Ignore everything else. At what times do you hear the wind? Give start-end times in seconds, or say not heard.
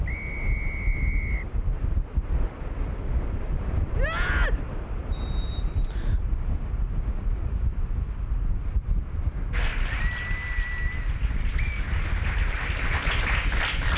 0.0-13.9.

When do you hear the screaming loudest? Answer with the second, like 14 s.
4 s.